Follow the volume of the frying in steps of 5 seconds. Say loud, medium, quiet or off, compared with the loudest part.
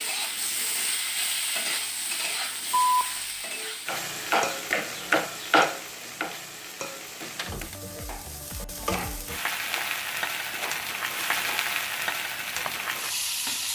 loud, medium, loud.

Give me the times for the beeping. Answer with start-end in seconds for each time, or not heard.
2.7-3.2.